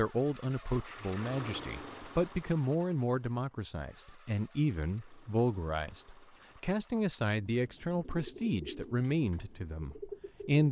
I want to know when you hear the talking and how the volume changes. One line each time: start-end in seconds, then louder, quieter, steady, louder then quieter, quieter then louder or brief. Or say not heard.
0.0-10.6 steady.